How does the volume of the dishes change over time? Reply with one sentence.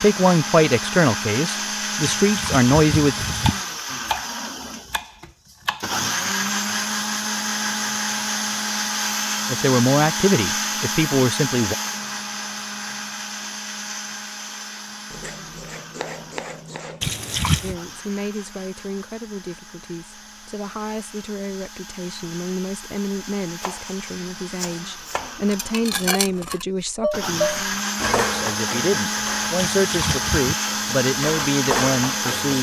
The loudness of the dishes goes down, then up.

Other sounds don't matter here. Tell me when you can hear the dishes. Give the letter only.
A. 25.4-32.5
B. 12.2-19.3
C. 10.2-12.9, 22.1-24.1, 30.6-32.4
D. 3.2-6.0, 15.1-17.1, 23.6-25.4
A.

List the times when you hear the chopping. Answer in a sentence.
You can hear the chopping from 3.2 to 6.0 s, from 15.1 to 17.1 s and from 23.6 to 25.4 s.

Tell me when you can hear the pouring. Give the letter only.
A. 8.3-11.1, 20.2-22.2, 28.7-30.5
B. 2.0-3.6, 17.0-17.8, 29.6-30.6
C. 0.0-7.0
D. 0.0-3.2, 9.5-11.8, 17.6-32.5
B.